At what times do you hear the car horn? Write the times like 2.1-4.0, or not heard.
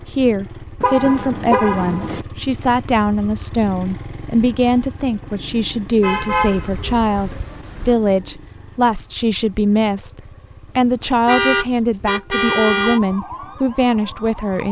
0.8-2.2, 6.0-8.0, 11.2-13.0.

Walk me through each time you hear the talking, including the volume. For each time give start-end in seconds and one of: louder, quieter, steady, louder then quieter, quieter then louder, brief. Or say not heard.
0.1-14.6 steady.